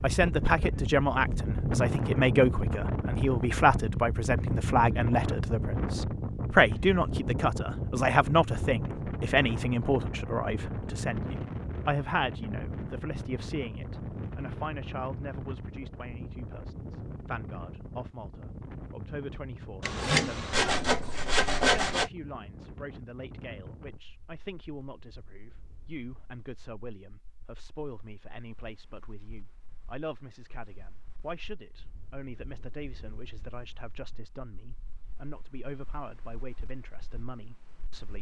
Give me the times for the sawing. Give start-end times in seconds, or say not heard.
19.8-22.1.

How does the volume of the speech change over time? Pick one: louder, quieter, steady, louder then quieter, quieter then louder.
quieter.